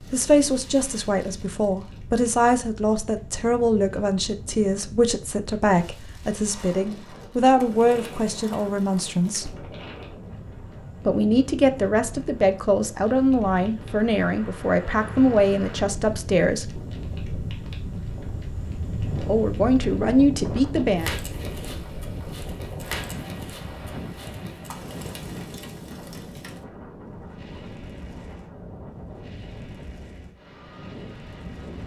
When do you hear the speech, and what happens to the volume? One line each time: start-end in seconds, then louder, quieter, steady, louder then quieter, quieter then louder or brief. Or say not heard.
0.1-9.6 steady
11.1-16.8 steady
19.2-21.1 brief.